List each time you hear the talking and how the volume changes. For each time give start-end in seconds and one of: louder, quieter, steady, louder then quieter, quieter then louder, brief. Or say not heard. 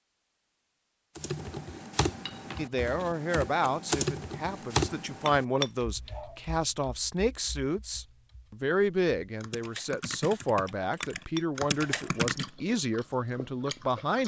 2.5-14.2 steady.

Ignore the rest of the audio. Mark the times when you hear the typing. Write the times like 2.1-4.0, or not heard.
1.1-12.5.